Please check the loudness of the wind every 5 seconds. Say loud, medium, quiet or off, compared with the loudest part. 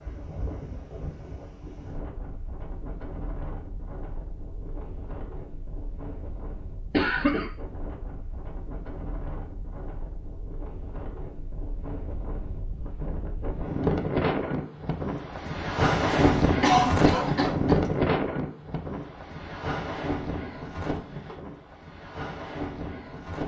quiet, quiet, medium, loud, medium.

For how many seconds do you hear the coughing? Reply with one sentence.
The coughing can be heard for 2 seconds in total.